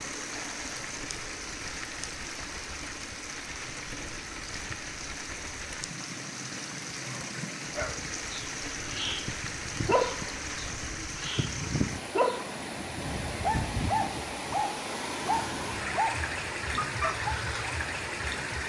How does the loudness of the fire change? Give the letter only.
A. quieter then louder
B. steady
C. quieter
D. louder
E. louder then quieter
B.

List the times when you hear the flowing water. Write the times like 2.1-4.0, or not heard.
0.0-18.6.